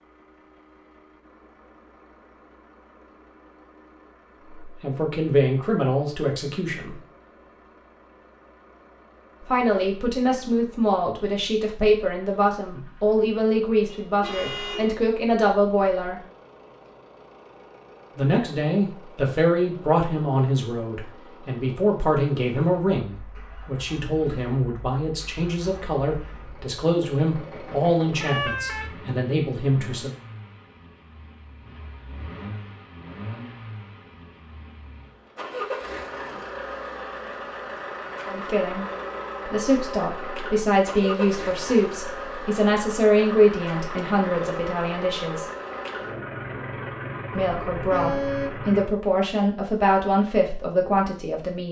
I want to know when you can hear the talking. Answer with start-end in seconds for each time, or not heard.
4.6-7.0, 9.4-16.2, 18.1-30.1, 38.2-38.9, 39.5-45.5, 47.4-51.6.